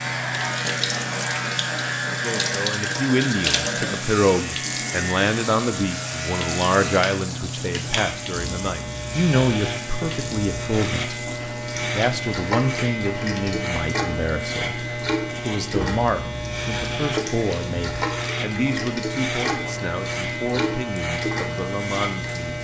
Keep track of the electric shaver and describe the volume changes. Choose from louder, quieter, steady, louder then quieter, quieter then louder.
steady.